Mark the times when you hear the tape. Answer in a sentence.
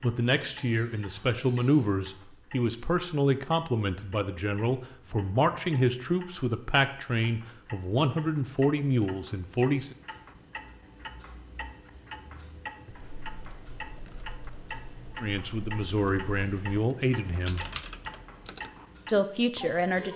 The tape can't be heard in this clip.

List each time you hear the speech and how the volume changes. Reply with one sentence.
The speech can be heard from 0.0 to 9.9 s, at a steady volume; briefly from 15.2 to 17.6 s; and briefly from 19.1 to 20.1 s.